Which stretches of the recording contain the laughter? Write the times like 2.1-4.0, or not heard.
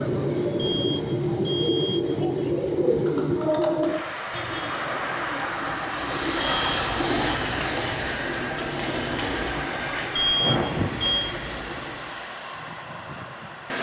not heard.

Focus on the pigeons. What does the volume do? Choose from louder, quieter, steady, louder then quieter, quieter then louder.
quieter then louder.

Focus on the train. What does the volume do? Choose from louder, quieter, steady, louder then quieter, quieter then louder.
quieter.